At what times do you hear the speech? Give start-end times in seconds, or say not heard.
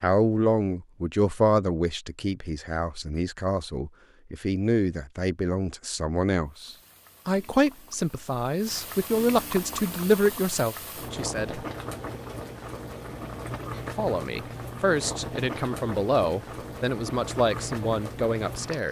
0.0-11.7, 13.9-18.8.